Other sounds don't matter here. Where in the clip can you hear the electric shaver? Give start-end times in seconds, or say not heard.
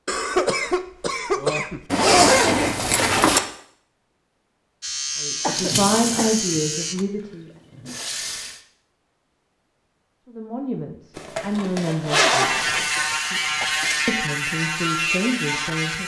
4.8-7.0, 12.2-16.0.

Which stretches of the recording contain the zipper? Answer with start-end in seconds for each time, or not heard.
1.9-3.4, 11.2-12.8.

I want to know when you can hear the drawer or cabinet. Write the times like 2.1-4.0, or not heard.
not heard.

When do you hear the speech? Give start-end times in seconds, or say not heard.
5.2-7.5, 10.2-12.6, 14.1-16.0.